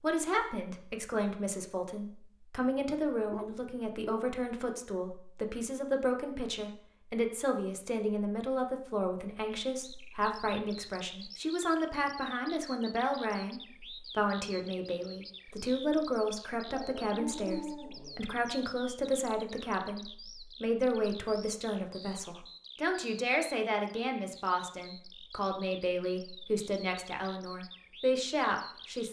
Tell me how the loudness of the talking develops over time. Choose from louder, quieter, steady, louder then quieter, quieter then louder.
steady.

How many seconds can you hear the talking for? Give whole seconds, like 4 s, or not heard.
29 s.